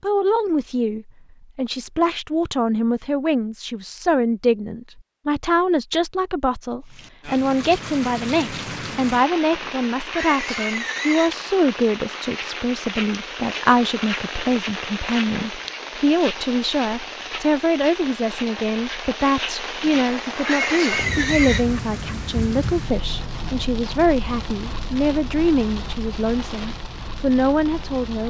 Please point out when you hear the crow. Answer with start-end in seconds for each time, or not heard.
not heard.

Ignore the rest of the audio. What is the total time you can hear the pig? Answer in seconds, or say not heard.
4 s.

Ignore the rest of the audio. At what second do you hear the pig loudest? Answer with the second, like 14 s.
21 s.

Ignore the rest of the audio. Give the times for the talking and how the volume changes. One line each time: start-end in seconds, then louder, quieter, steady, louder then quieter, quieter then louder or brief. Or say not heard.
0.0-28.2 steady.